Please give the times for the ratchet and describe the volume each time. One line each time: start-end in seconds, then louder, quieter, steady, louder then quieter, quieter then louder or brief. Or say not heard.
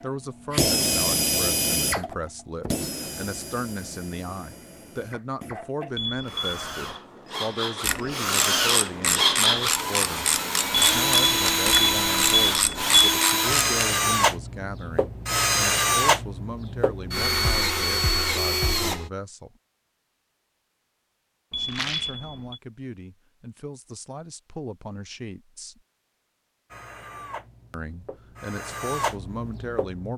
7.8-13.8 steady.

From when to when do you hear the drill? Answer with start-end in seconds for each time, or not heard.
0.5-19.1, 26.7-30.1.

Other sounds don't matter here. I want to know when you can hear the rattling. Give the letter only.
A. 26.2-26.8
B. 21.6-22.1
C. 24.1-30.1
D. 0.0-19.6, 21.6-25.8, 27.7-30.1
B.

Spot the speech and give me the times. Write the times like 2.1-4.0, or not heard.
0.0-19.6, 21.6-25.8, 27.7-30.1.